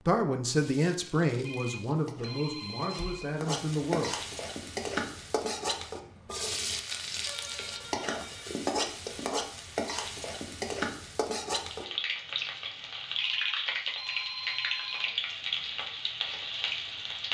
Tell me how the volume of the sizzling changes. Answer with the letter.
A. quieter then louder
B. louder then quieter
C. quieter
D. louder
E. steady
D.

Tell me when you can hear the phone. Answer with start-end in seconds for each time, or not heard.
1.4-3.4, 7.2-8.6, 13.2-15.2.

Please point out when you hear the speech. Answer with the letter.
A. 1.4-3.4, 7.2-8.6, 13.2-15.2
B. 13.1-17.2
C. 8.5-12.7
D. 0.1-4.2
D.